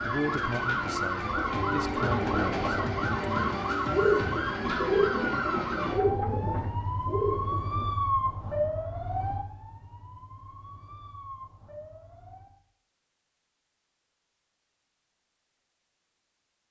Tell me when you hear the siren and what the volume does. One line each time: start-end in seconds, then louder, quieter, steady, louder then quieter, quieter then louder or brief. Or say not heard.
0.0-12.6 quieter.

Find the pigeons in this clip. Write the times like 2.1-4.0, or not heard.
1.2-7.8.